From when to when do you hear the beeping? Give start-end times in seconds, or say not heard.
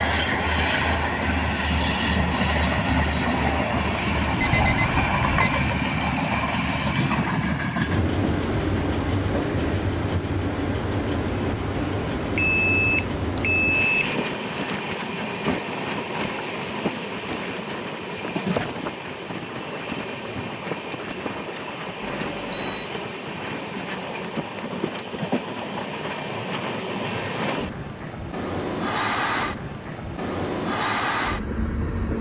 4.3-5.6, 12.3-14.2, 22.0-22.9.